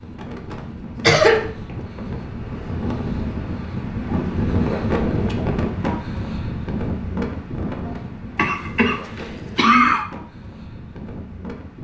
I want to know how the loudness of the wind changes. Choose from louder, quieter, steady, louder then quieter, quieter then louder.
louder then quieter.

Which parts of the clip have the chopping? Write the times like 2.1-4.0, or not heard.
not heard.